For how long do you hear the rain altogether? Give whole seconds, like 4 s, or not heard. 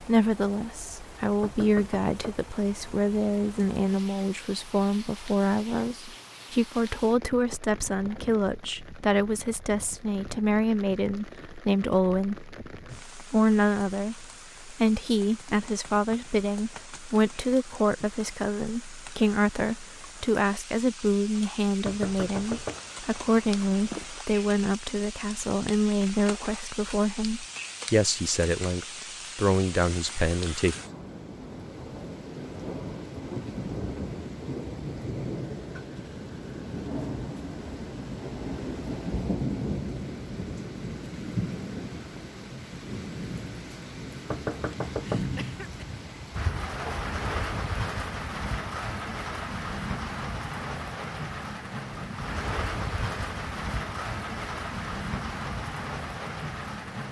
57 s.